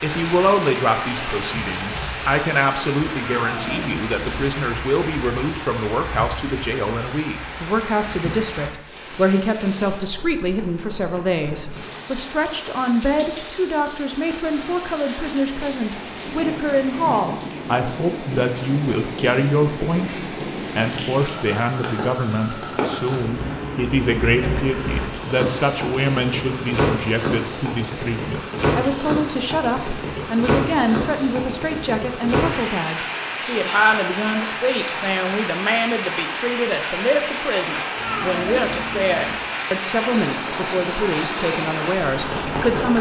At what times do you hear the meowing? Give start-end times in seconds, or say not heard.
3.1-4.5, 38.0-39.5.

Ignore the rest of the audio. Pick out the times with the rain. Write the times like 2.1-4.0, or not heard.
0.0-42.9.